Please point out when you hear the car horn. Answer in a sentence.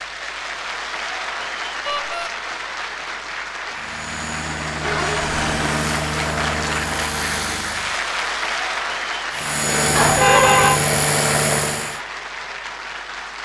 You can hear the car horn from 1.9 to 2.3 s, from 4.8 to 5.5 s and from 9.9 to 10.8 s.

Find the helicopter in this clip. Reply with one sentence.
The helicopter can be heard from 3.6 to 8.0 s and from 9.3 to 12.0 s.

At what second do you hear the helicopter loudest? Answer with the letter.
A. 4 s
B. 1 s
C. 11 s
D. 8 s
C.